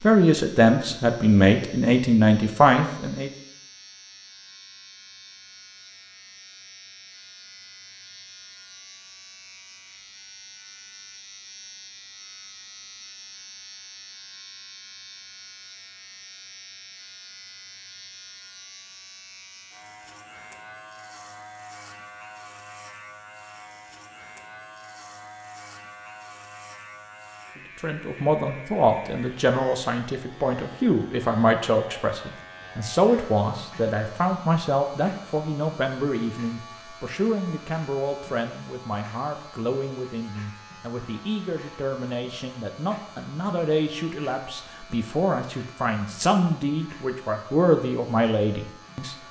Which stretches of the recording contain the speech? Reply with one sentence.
The speech can be heard from 0.0 to 3.3 s and from 27.8 to 49.1 s.